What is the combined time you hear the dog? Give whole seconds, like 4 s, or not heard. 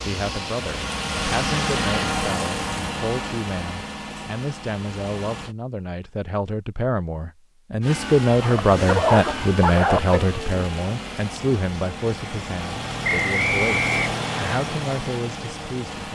2 s.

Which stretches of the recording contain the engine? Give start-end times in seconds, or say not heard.
0.0-5.5, 7.8-16.1.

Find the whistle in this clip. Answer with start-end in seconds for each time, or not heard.
13.0-14.6.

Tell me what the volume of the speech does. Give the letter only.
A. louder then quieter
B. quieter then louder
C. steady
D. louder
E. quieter
A.